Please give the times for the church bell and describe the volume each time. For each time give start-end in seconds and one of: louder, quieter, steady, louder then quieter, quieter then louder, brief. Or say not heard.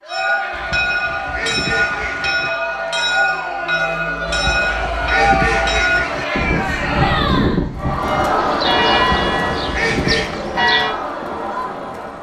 0.1-10.9 steady.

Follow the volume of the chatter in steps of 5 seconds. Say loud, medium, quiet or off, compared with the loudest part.
medium, loud, medium.